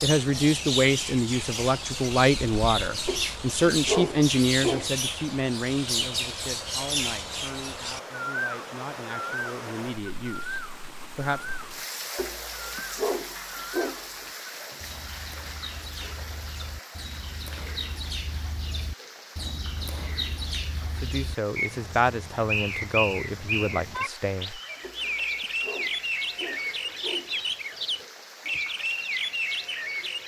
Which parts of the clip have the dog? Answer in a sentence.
The dog can be heard from 3.0 to 4.9 s, from 12.2 to 14.2 s and from 24.8 to 27.4 s.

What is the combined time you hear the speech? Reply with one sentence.
The speech can be heard for 15 seconds in total.